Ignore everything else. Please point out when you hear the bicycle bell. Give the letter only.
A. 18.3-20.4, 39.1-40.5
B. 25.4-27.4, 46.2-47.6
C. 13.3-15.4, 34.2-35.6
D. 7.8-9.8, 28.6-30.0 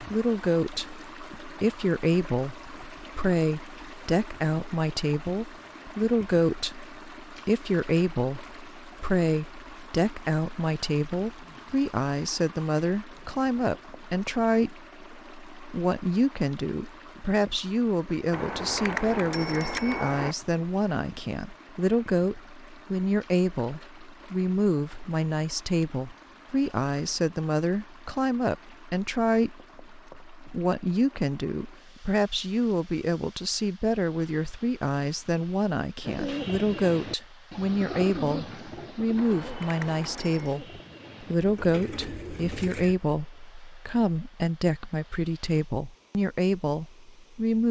A.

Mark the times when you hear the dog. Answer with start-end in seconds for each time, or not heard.
not heard.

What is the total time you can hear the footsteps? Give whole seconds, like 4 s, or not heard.
not heard.